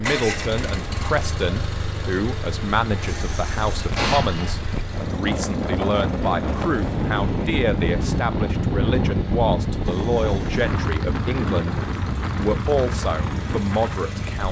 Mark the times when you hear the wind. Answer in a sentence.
You can hear the wind from 0.0 to 14.4 s.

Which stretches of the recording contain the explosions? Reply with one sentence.
You can hear the explosions from 4.0 to 4.5 s.